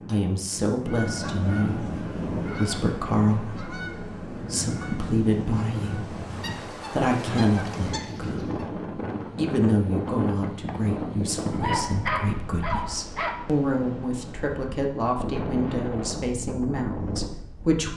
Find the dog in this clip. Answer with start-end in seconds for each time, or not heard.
11.5-13.4.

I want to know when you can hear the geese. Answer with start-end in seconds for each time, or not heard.
0.8-8.7.